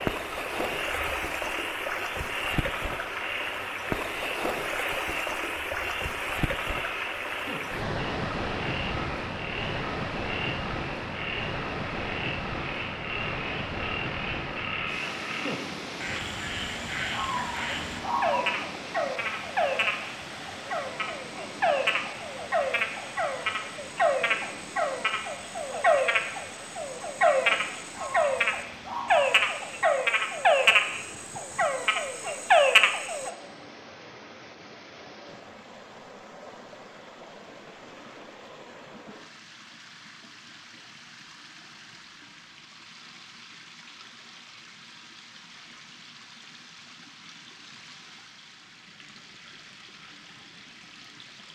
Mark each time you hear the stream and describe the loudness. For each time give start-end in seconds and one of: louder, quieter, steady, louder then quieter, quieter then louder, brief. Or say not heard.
0.0-51.5 quieter.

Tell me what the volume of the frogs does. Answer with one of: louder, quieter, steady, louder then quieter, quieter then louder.
louder.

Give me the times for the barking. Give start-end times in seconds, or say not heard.
17.1-18.4, 27.9-29.2.